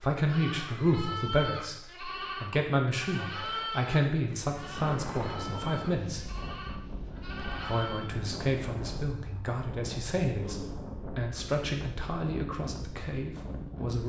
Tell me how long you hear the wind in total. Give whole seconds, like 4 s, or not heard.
10 s.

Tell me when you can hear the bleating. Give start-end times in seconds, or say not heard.
0.1-8.2.